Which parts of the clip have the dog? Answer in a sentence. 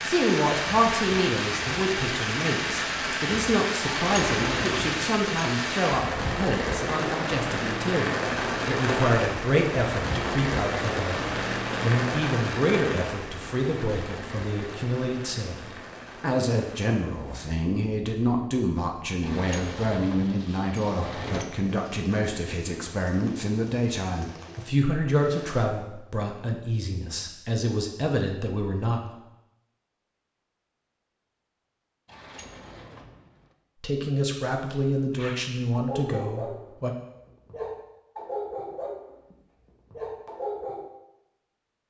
The dog can be heard from 35.1 to 40.9 s.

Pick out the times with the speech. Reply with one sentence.
The speech can be heard from 0.0 to 29.0 s and from 33.8 to 37.0 s.